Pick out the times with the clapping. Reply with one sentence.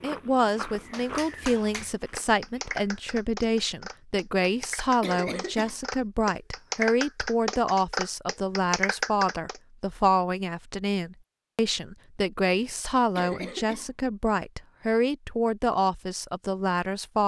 You can hear the clapping from 0.9 to 9.6 s.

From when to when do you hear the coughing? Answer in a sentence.
The coughing can be heard from 5.0 to 5.8 s and from 13.2 to 13.9 s.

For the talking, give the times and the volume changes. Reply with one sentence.
You can hear the talking from 0.0 to 17.2 s, at a steady volume.